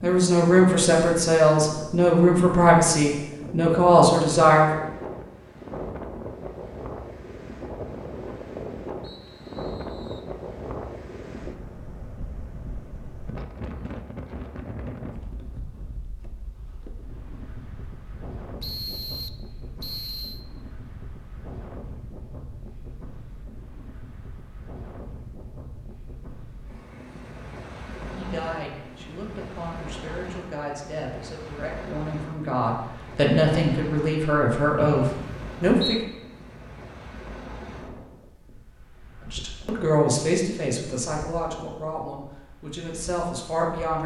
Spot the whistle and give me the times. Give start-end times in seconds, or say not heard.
9.0-10.3, 18.6-20.4, 34.8-36.0.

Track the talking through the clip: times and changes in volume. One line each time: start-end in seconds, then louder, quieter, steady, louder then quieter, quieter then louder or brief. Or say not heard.
0.0-4.7 steady
28.0-36.0 louder
39.3-44.0 quieter then louder.